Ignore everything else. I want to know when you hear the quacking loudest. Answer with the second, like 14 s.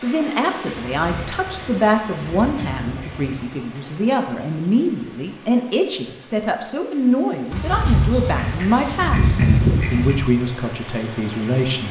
10 s.